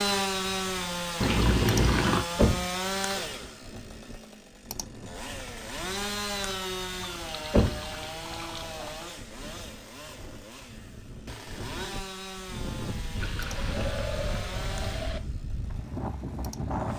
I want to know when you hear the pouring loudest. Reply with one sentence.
The loudest moment of the pouring is at 2 seconds.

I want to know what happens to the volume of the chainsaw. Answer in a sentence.
The loudness of the chainsaw goes down.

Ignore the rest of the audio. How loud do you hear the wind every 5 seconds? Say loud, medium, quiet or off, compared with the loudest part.
quiet, quiet, medium, loud.